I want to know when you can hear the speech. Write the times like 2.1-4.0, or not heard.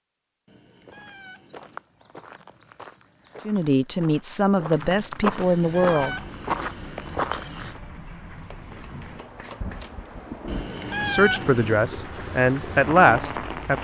3.5-6.2, 11.1-13.7.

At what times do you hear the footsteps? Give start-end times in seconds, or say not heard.
0.8-7.8.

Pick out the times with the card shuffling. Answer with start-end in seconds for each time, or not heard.
8.4-10.1.